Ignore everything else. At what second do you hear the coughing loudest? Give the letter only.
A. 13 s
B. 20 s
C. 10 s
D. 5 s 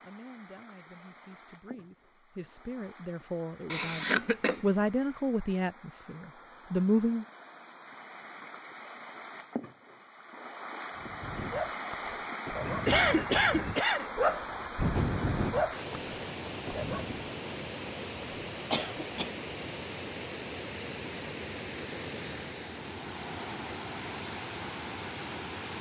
A.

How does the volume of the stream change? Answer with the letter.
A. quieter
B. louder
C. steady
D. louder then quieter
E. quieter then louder
B.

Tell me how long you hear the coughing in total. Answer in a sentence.
You can hear the coughing for 3 seconds altogether.